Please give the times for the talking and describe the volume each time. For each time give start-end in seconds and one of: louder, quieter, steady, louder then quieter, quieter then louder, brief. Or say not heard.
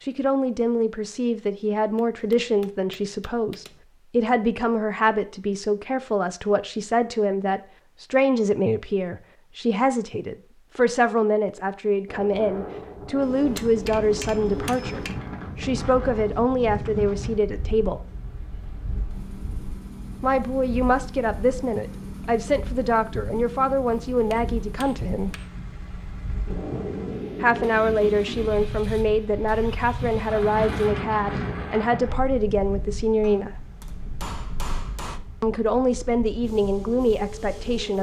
0.0-18.0 steady
20.2-25.4 steady
27.4-33.5 steady
35.4-37.9 brief.